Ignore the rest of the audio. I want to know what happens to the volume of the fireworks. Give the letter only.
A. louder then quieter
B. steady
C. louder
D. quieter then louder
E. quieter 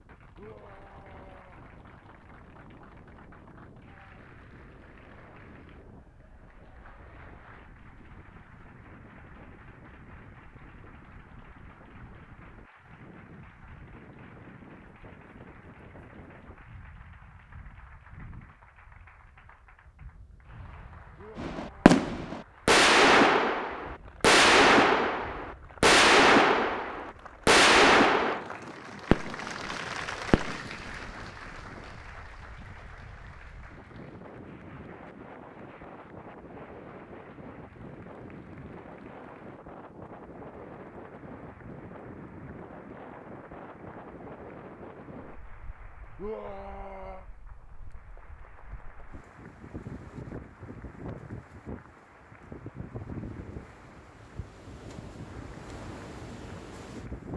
E.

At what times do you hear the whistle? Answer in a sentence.
The whistle can't be heard in this clip.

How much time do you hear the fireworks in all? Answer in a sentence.
The fireworks can be heard for 10 seconds in total.